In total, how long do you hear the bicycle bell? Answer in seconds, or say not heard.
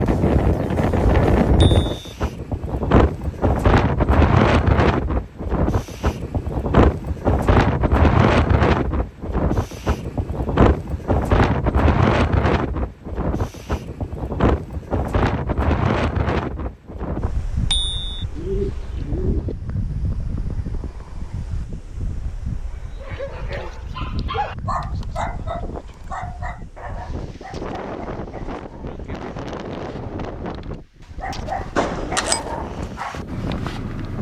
2 s.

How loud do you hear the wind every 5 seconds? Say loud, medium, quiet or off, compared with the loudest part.
loud, loud, loud, medium, quiet, quiet, quiet.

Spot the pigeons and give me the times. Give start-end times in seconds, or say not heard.
18.4-19.6.